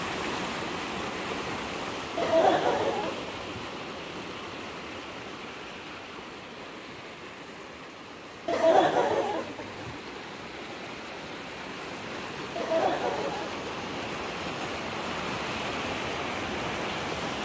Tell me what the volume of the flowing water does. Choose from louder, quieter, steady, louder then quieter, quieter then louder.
quieter then louder.